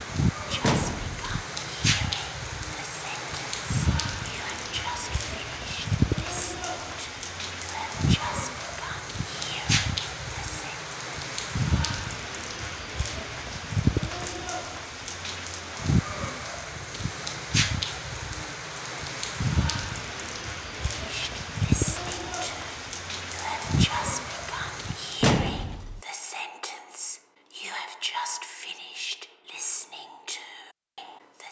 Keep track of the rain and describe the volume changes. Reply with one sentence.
The loudness of the rain stays about the same.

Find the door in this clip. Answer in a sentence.
The door can be heard from 0.6 to 1.4 s and from 25.2 to 26.0 s.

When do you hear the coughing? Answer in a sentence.
The coughing can't be heard in this clip.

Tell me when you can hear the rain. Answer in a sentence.
The rain can be heard from 0.0 to 25.2 s.